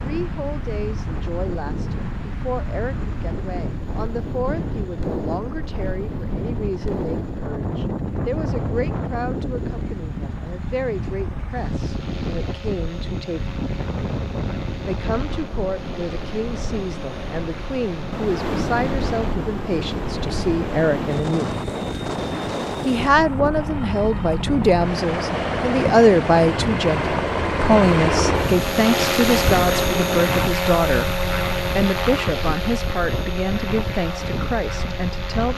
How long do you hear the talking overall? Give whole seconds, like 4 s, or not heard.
32 s.